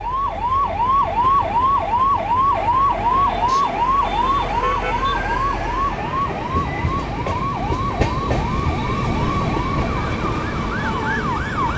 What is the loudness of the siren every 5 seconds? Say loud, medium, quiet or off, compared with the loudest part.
loud, medium, medium.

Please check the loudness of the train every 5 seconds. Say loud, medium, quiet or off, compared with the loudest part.
quiet, loud, loud.